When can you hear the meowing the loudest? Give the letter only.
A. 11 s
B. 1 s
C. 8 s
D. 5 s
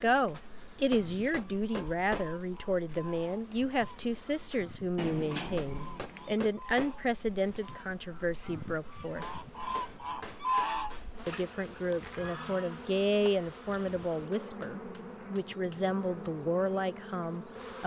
D.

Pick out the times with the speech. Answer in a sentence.
The speech can be heard from 0.0 to 9.3 s and from 11.2 to 17.8 s.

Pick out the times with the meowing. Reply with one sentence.
The meowing can be heard from 5.0 to 6.5 s.